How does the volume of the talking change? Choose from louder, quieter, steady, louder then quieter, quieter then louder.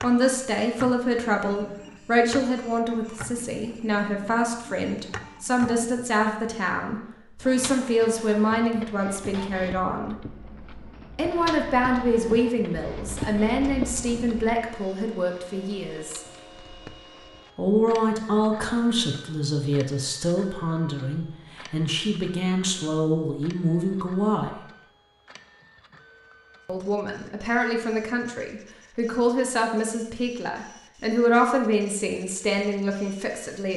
steady.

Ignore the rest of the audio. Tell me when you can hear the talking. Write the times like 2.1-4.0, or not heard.
0.0-10.2, 11.2-16.2, 17.6-24.6, 26.6-33.7.